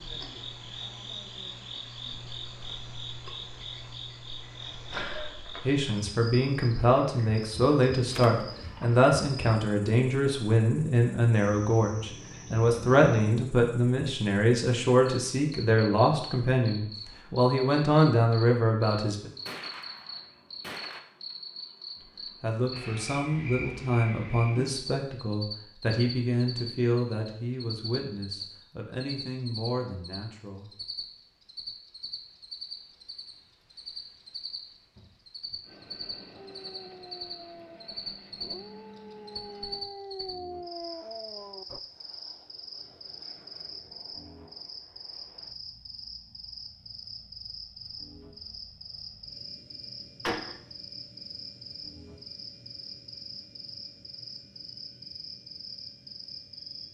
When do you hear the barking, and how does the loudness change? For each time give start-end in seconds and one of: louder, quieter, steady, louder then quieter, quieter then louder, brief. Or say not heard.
36.4-41.8 louder.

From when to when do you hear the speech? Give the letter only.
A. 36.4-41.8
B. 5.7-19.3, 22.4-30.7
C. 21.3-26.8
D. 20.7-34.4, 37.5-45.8
B.